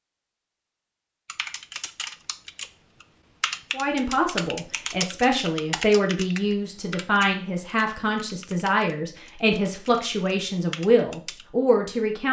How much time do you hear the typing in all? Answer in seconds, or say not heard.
10 s.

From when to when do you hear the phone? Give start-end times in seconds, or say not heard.
not heard.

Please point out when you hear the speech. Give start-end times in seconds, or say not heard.
3.7-12.2.